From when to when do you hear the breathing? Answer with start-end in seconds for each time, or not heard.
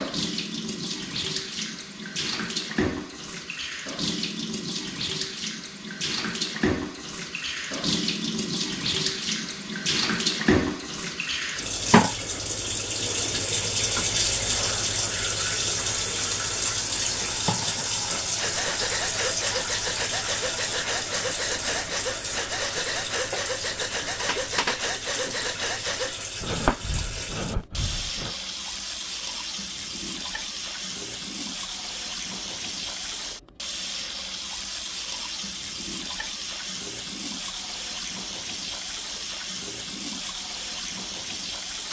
18.1-28.4.